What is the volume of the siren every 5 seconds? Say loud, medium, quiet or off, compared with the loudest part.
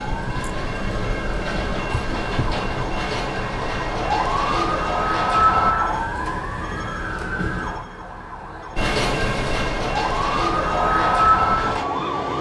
medium, loud, loud.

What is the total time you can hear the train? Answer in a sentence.
The train can be heard for 9 seconds in total.